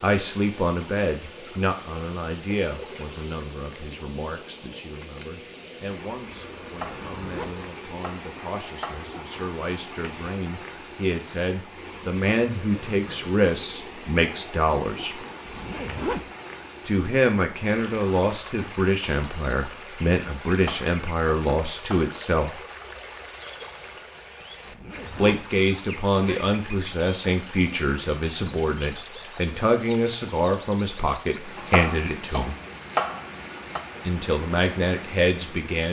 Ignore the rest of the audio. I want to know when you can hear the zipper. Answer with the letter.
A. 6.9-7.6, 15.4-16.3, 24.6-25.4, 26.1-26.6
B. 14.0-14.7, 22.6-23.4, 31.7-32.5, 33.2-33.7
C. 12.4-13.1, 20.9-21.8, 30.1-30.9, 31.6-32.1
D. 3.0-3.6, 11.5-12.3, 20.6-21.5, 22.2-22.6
A.